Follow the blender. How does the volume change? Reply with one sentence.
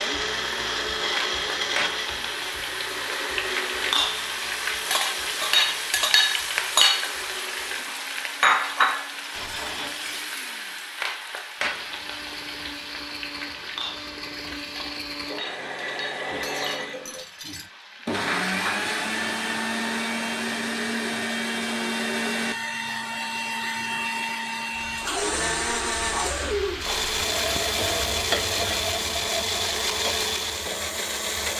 The loudness of the blender goes down, then up.